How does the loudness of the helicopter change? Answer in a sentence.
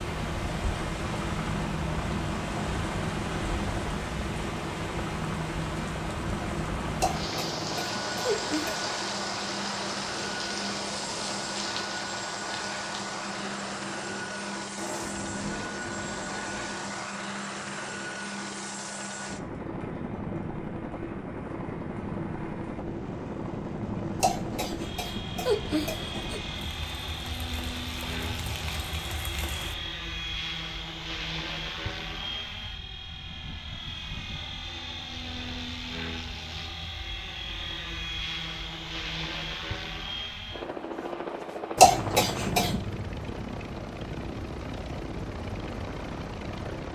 The volume of the helicopter stays about the same.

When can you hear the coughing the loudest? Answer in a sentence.
The volume of the coughing peaks at 42 seconds.